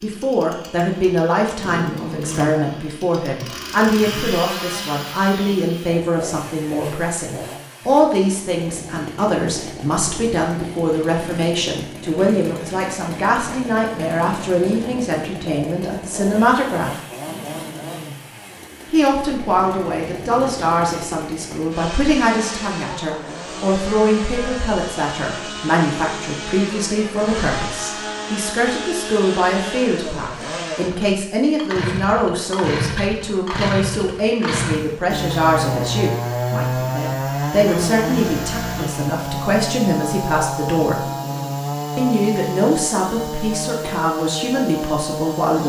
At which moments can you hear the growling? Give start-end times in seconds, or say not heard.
1.6-2.5, 17.2-18.6, 40.9-41.6.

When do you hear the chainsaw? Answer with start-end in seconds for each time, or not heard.
0.0-45.6.